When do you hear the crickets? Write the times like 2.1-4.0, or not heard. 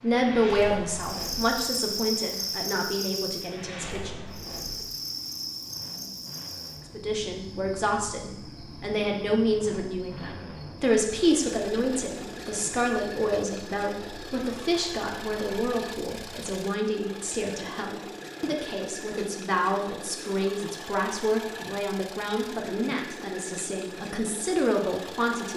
0.1-16.6.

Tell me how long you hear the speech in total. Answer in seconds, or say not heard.
23 s.